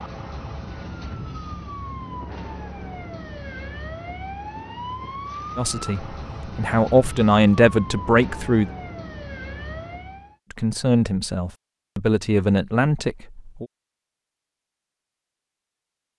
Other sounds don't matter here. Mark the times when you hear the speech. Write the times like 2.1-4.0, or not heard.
5.5-8.7, 10.5-13.7.